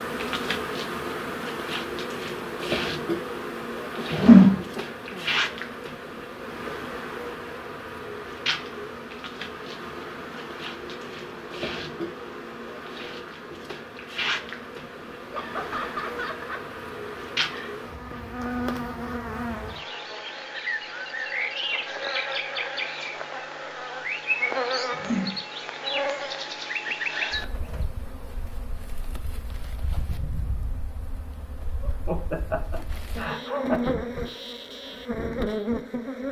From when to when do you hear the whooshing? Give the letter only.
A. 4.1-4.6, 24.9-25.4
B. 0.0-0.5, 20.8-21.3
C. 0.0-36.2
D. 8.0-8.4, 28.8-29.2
A.